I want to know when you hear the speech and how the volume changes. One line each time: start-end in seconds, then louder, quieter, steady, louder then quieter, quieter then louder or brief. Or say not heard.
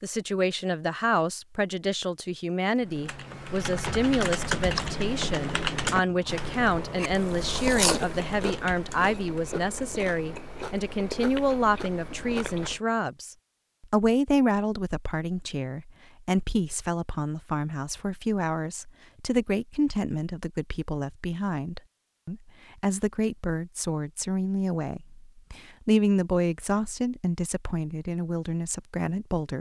0.0-29.5 steady.